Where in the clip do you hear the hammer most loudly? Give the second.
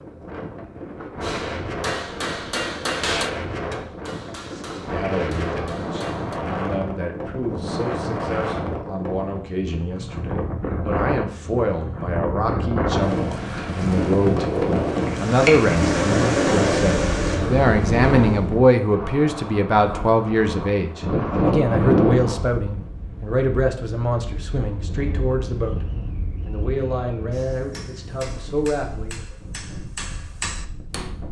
3 s.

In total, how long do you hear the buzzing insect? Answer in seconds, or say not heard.
4 s.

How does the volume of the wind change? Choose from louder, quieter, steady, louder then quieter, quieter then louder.
louder then quieter.